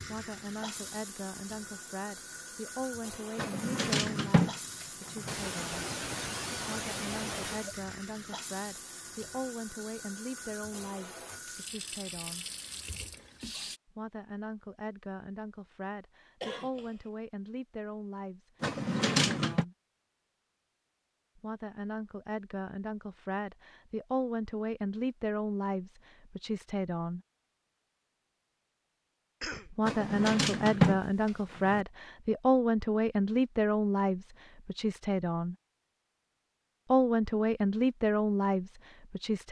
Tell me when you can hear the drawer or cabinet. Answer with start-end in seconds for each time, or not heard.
3.4-5.3, 18.6-19.6, 29.9-31.9.